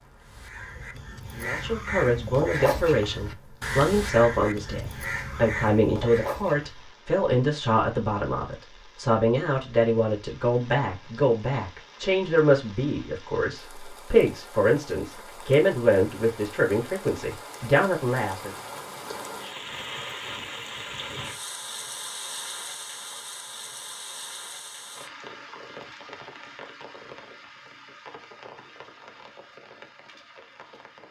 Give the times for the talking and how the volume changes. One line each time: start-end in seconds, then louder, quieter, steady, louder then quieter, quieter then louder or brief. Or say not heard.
1.4-18.6 steady.